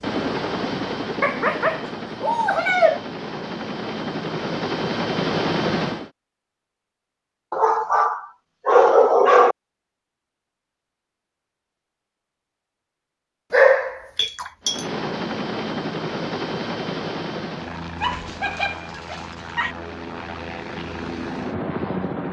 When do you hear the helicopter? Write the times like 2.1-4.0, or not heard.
0.0-6.1, 14.6-22.2.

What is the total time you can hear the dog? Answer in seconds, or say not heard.
7 s.